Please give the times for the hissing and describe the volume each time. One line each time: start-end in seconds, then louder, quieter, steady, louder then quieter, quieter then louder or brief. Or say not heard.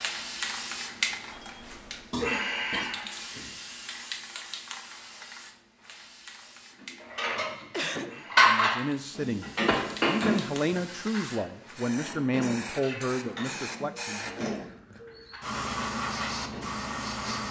0.0-17.4 quieter then louder.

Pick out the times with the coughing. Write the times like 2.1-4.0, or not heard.
2.1-3.5, 7.7-8.2, 14.2-14.7.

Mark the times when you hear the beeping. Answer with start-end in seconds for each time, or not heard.
1.3-2.1.